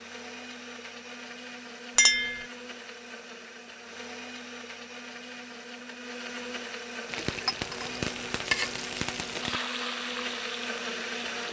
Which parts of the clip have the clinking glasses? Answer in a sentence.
The clinking glasses can be heard from 1.9 to 2.5 s and from 7.5 to 7.9 s.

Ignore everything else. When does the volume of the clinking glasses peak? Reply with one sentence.
The volume of the clinking glasses peaks at 2 seconds.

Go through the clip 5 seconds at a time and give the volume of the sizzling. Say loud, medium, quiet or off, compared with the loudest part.
off, loud, medium.